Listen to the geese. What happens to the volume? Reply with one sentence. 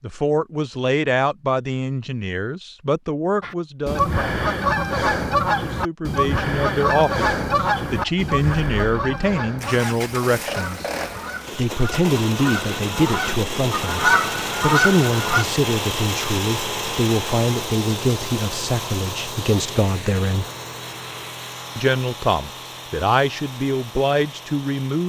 The volume of the geese goes down, then up.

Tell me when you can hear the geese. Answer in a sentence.
You can hear the geese from 3.4 to 15.4 s.